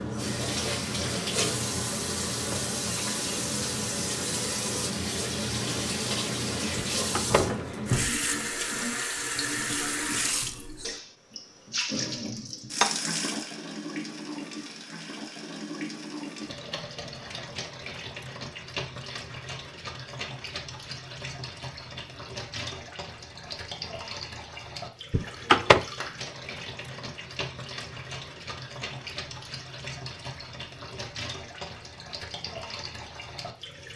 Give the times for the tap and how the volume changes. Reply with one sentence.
You can hear the tap from 0.0 to 33.9 s, getting quieter.